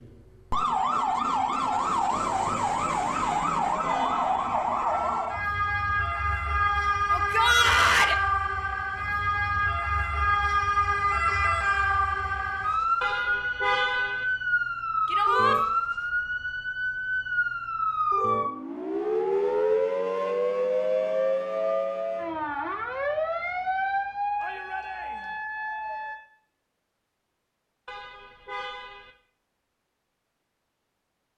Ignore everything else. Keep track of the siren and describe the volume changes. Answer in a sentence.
The volume of the siren stays about the same.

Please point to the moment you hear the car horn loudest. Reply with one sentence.
The volume of the car horn peaks at 14 seconds.